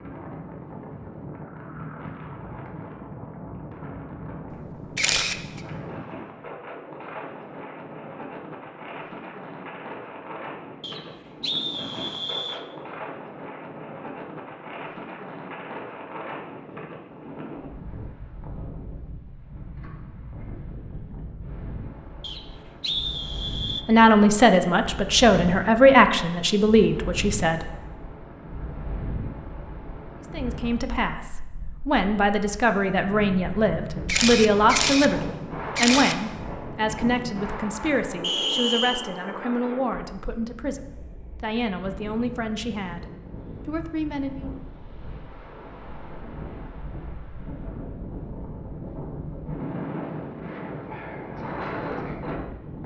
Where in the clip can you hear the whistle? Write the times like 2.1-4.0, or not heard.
10.8-12.7, 22.2-23.9, 38.2-39.0.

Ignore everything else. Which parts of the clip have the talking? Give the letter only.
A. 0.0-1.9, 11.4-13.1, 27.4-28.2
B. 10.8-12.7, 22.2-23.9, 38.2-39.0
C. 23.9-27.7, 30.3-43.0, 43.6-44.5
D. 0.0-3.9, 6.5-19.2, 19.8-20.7
C.